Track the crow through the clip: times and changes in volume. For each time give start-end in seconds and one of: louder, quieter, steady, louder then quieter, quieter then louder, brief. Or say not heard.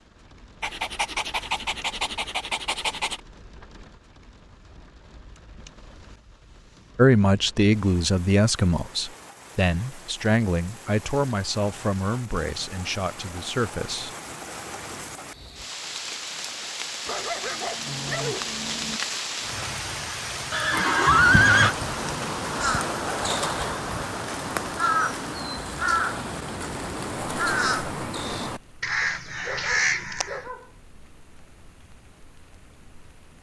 21.1-30.5 steady.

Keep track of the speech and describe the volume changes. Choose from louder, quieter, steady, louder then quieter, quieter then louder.
quieter.